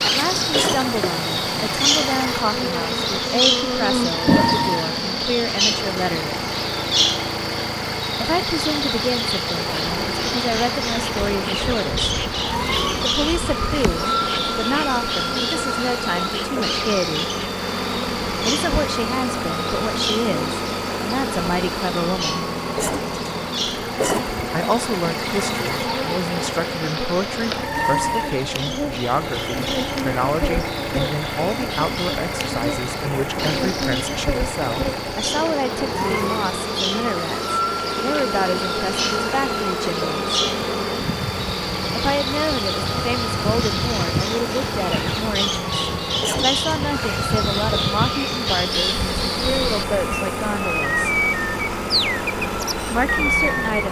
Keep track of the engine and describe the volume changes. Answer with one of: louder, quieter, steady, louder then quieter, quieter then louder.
steady.